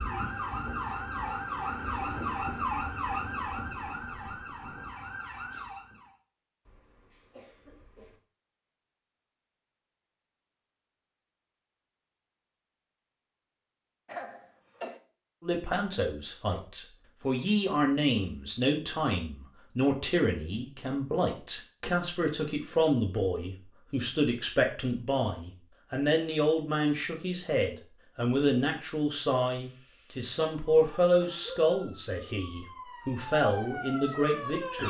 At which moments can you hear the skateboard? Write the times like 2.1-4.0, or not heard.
not heard.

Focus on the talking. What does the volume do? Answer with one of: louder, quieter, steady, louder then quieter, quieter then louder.
steady.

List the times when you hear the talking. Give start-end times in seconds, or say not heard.
15.4-34.8.